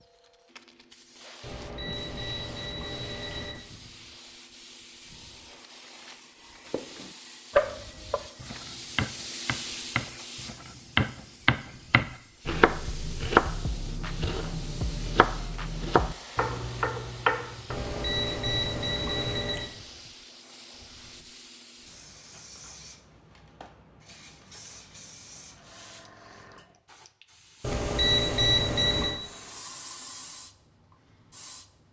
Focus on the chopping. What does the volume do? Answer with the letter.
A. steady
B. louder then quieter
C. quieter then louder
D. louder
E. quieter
A.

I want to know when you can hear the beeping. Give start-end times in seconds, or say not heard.
1.4-3.5, 17.7-19.7, 27.6-29.2.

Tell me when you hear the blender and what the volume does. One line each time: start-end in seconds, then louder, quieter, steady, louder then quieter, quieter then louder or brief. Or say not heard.
not heard.